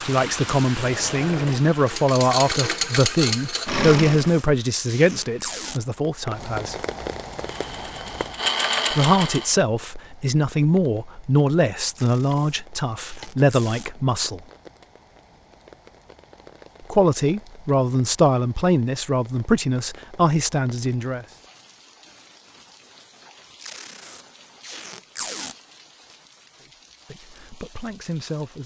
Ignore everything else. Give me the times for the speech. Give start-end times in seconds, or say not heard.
0.1-6.8, 8.9-14.4, 16.9-21.2, 27.1-28.6.